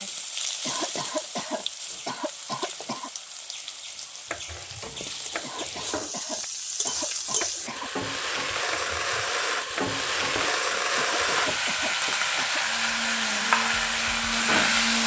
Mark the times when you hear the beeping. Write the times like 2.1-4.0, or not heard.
not heard.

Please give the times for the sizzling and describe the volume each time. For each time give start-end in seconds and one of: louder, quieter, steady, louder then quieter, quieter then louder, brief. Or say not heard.
0.0-15.0 louder.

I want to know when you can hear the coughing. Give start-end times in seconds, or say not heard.
0.6-3.1, 5.4-7.9, 10.9-12.6.